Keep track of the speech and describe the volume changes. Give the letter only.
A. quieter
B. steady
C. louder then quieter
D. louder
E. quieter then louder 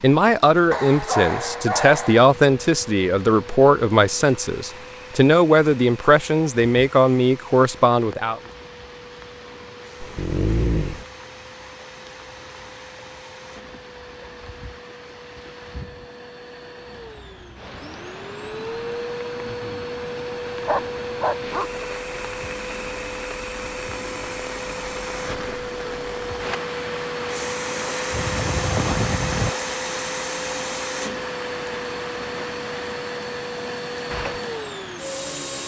B.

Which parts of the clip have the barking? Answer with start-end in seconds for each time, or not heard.
0.7-2.3, 10.0-11.1, 20.4-21.7, 28.1-29.6.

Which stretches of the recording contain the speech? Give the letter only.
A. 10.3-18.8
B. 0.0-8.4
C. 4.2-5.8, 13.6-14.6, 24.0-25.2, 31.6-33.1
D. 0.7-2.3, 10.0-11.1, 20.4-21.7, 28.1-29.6
B.